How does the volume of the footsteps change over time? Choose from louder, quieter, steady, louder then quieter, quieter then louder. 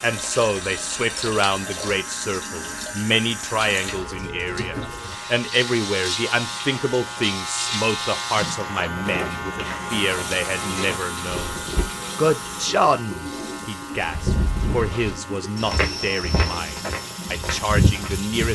louder.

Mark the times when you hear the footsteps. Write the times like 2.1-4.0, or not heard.
8.9-11.9, 13.9-18.5.